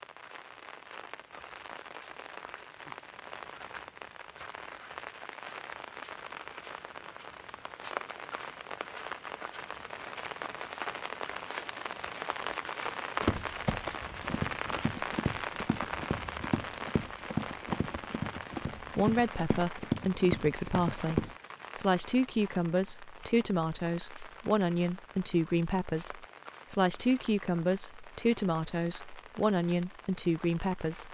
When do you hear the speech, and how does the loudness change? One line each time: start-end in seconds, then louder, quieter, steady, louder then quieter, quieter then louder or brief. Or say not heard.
18.8-31.1 steady.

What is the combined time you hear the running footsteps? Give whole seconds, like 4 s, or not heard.
8 s.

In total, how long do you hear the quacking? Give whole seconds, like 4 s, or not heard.
not heard.